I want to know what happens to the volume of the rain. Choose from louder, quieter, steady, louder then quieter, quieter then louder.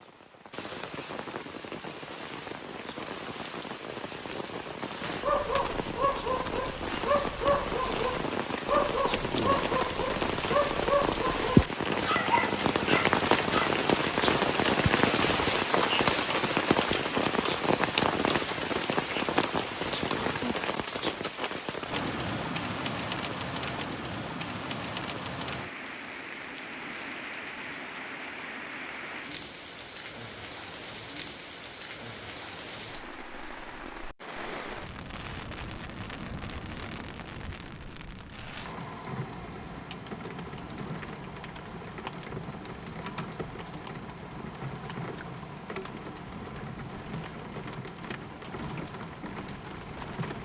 louder then quieter.